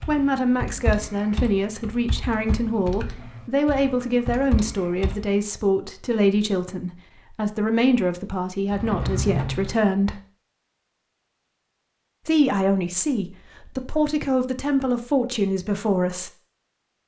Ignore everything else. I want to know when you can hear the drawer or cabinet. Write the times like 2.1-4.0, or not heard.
8.7-9.8.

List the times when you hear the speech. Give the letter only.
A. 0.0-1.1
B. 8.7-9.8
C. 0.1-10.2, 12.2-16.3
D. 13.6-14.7
C.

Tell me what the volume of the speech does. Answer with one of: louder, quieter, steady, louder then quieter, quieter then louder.
steady.